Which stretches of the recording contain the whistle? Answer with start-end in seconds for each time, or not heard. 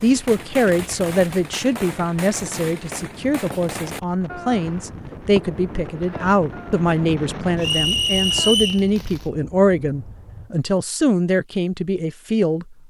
7.6-8.8.